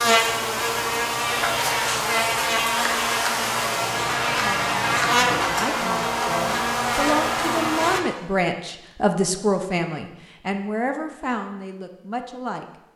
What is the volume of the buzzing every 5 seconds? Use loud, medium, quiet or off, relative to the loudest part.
loud, loud, off.